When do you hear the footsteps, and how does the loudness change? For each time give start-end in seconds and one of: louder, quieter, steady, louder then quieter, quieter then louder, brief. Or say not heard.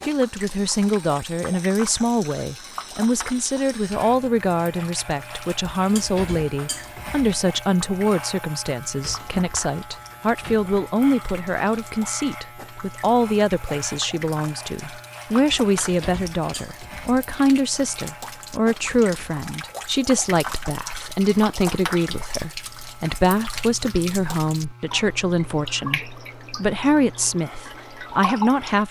not heard.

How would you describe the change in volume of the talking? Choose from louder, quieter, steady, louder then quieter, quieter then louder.
steady.